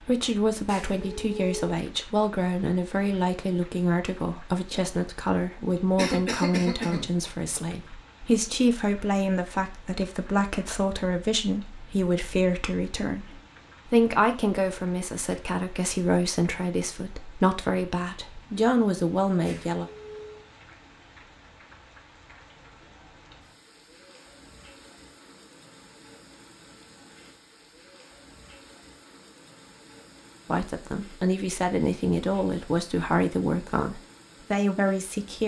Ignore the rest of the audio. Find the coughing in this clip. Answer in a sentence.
You can hear the coughing from 6.0 to 7.0 s.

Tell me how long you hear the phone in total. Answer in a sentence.
You can hear the phone for 2 seconds altogether.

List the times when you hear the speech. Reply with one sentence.
You can hear the speech from 0.1 to 19.9 s and from 30.4 to 35.4 s.